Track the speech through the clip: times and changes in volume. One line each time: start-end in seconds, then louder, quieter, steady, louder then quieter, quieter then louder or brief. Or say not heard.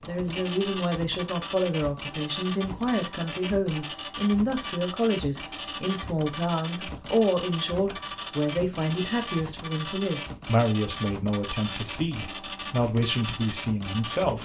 0.1-14.4 steady.